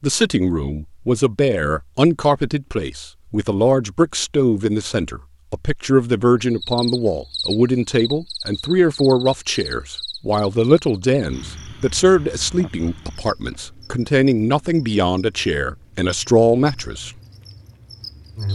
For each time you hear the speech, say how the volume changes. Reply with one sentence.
The speech can be heard from 0.0 to 17.1 s, at a steady volume.